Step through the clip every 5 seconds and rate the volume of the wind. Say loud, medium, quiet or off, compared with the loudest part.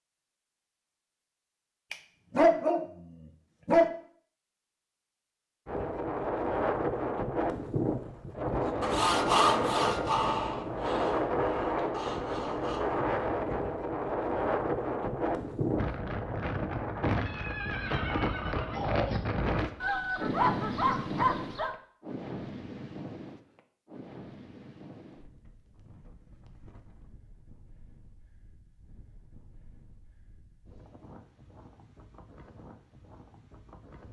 off, loud, loud, loud, medium, quiet, quiet.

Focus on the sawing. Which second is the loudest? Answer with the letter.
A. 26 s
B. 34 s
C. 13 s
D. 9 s
D.